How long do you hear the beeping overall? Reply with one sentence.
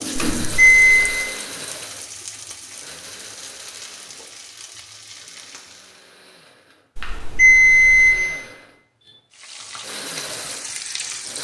The beeping can be heard for 2 seconds in total.